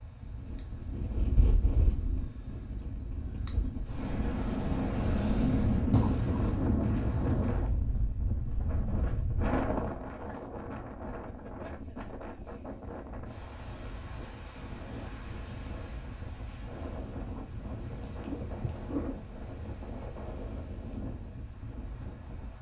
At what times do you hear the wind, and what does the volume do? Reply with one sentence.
The wind can be heard from 0.0 to 22.5 s, getting louder then quieter.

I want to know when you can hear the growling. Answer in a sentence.
You can hear the growling from 5.9 to 6.7 s and from 17.2 to 19.2 s.